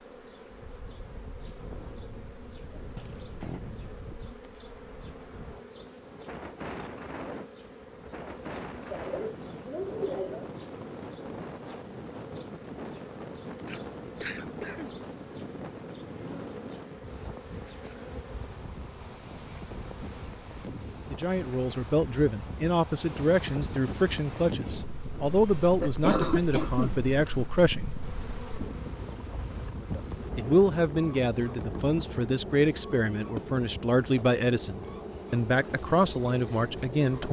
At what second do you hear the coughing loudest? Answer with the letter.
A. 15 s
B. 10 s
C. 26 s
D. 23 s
C.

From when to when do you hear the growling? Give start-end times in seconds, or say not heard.
3.0-3.6.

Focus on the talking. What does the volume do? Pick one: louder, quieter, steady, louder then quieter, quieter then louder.
steady.